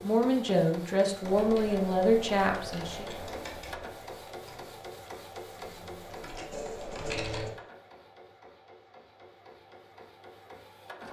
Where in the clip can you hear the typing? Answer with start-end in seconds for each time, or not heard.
1.2-7.5.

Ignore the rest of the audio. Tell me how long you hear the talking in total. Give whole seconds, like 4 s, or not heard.
3 s.